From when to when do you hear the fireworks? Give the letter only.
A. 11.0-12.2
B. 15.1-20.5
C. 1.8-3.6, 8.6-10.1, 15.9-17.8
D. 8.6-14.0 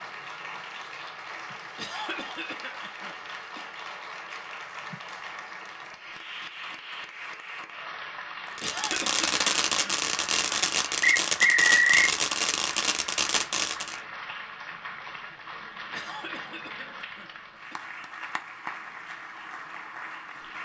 D.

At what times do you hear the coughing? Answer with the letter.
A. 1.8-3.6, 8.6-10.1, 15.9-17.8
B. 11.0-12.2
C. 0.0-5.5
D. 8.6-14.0
A.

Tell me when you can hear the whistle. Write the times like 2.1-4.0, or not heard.
11.0-12.2.